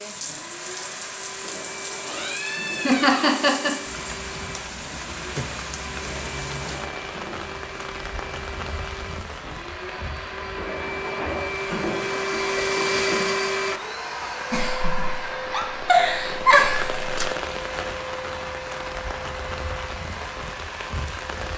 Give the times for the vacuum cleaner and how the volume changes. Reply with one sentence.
You can hear the vacuum cleaner from 0.0 to 21.5 s, getting louder then quieter.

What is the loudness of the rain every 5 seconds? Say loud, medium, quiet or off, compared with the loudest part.
loud, loud, medium, loud, loud.